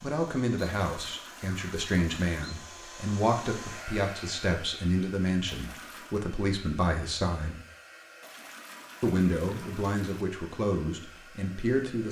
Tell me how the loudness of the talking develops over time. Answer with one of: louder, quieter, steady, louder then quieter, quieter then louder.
steady.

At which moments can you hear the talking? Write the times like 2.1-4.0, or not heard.
0.0-7.6, 9.0-12.0.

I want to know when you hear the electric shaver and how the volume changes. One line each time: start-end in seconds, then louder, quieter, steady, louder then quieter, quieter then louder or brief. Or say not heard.
not heard.